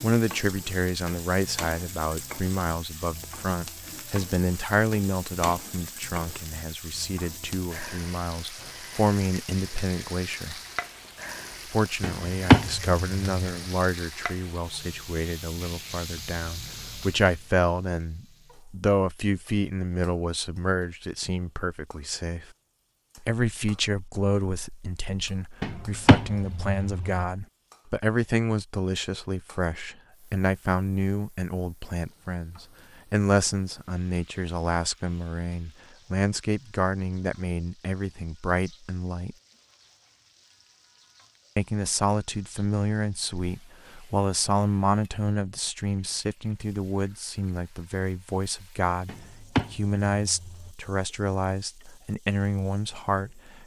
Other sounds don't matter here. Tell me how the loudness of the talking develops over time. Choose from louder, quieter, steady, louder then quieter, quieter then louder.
steady.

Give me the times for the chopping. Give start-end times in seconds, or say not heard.
12.0-13.7, 25.6-27.2, 49.0-50.7.